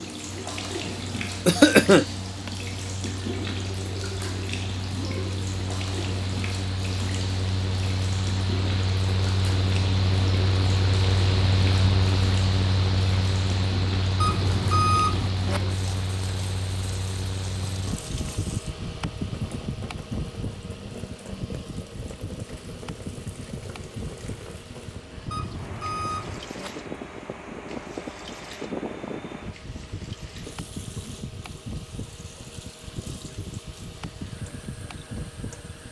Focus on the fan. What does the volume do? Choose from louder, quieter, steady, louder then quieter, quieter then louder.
louder then quieter.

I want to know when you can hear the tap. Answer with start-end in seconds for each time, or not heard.
0.0-35.8.